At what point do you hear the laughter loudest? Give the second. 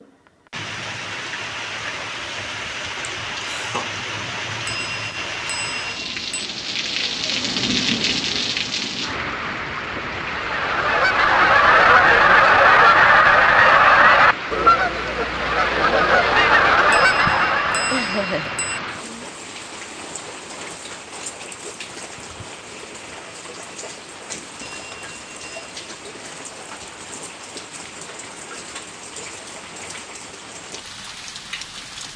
18 s.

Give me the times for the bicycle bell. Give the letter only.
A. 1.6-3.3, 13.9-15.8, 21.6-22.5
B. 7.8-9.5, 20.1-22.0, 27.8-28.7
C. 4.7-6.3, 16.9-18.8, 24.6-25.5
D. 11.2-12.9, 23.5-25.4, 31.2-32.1
C.